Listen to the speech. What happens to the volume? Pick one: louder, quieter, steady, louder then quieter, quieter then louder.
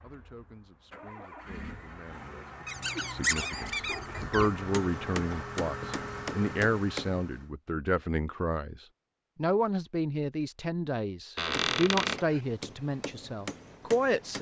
louder.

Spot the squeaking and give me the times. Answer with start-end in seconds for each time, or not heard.
2.6-4.5, 11.3-12.2.